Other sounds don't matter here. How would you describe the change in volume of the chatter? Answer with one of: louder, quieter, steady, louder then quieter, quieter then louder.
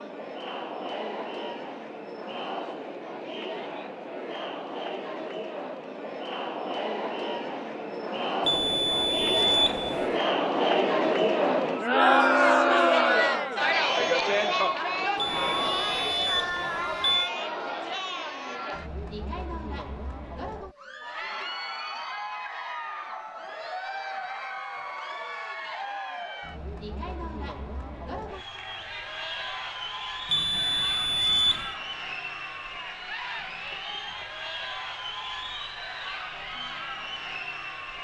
louder then quieter.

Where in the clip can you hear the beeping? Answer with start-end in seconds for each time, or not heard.
8.4-10.1, 15.2-17.3, 30.3-31.8.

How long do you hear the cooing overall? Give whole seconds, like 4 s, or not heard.
not heard.